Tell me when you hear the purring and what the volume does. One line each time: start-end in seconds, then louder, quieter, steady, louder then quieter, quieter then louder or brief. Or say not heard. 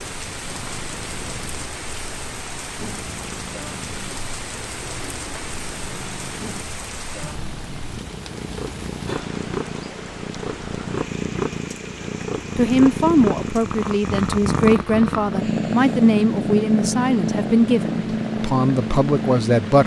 0.0-19.8 louder.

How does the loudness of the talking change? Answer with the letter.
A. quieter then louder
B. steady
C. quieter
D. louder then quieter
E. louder
B.